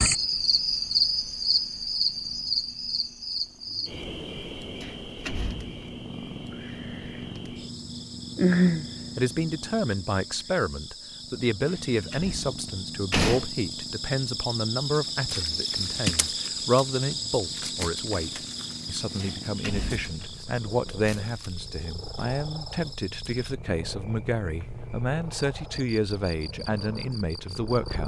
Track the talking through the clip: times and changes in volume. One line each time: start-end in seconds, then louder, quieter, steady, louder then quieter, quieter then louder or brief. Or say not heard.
9.2-28.0 steady.